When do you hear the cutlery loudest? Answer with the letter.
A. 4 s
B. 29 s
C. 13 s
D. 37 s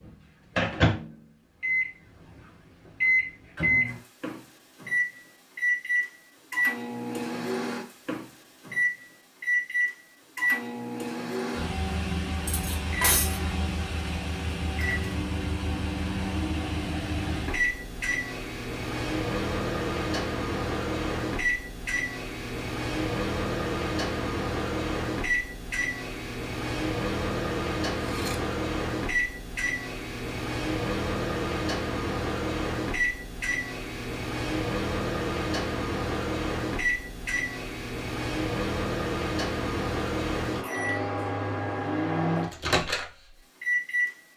C.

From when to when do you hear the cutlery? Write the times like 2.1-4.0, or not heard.
12.4-13.4, 27.9-28.4.